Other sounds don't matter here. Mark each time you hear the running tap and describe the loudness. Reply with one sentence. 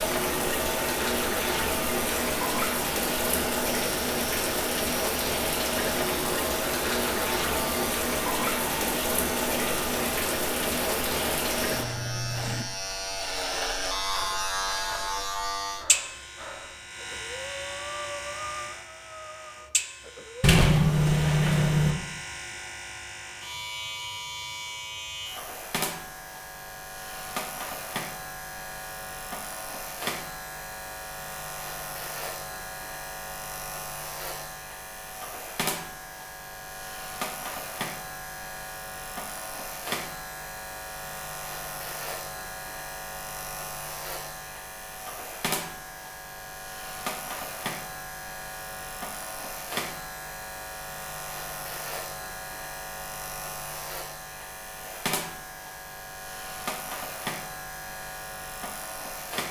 The running tap can be heard from 0.0 to 12.7 s, at a steady volume.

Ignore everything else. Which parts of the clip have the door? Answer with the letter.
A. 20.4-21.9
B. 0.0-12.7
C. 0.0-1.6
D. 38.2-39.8
A.